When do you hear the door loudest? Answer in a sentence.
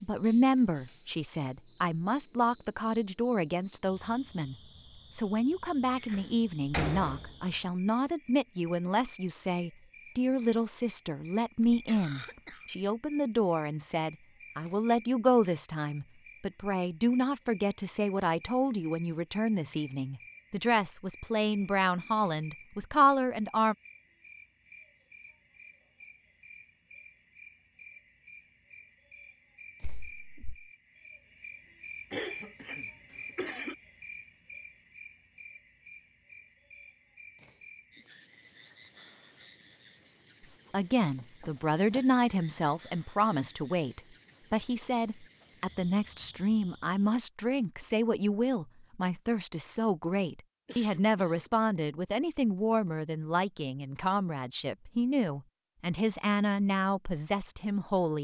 The volume of the door peaks at 7 seconds.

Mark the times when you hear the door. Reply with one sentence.
You can hear the door from 6.0 to 7.5 s, from 29.8 to 30.6 s and from 41.1 to 42.0 s.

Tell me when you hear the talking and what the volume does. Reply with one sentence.
You can hear the talking from 0.0 to 23.8 s, at a steady volume; and from 40.7 to 58.1 s, at a steady volume.